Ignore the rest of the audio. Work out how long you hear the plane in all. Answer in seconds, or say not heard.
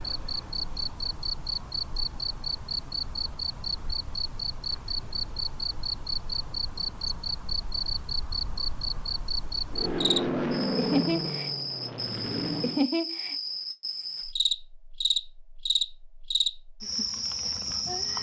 3 s.